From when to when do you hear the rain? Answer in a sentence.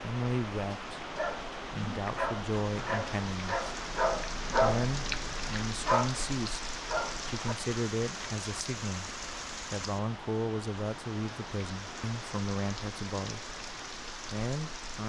You can hear the rain from 0.0 to 15.0 s.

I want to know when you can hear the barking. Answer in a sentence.
The barking can be heard from 1.0 to 7.5 s.